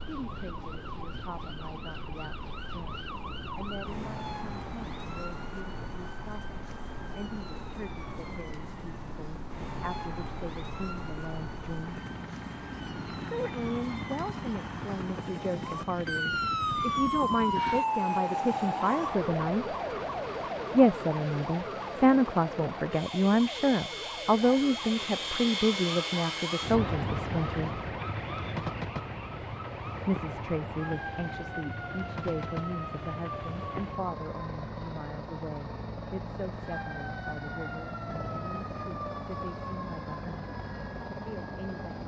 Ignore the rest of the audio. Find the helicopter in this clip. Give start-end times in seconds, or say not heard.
0.0-42.0.